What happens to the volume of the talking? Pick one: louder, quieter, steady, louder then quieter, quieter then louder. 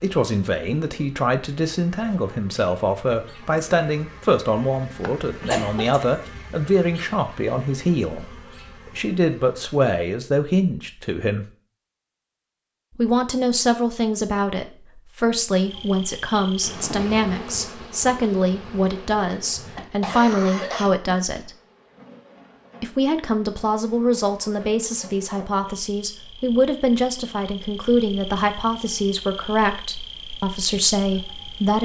steady.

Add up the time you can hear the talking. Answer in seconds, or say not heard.
29 s.